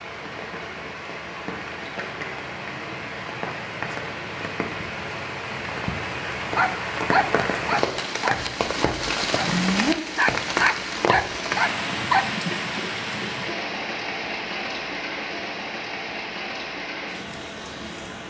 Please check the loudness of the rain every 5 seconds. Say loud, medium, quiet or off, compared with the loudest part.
medium, loud, loud, medium.